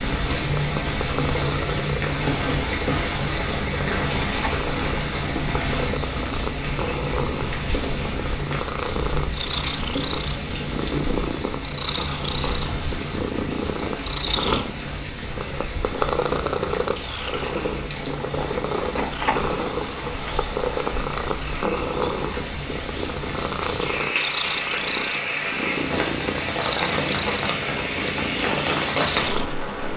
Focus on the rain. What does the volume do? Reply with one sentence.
The volume of the rain goes down, then up.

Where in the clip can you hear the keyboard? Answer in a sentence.
The keyboard can't be heard in this clip.